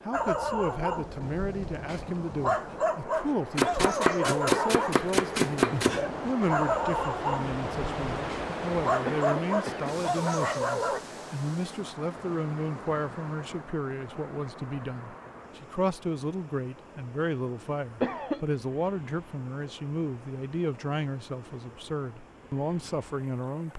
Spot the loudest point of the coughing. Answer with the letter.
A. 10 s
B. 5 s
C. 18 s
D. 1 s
C.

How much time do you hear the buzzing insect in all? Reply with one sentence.
The buzzing insect can't be heard in this clip.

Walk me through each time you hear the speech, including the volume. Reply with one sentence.
The speech can be heard from 0.1 to 23.7 s, at a steady volume.